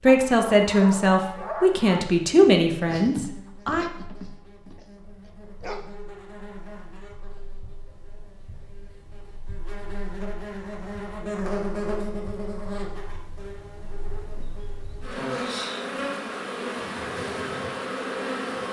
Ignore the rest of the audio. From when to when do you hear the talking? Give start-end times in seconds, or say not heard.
0.0-3.9.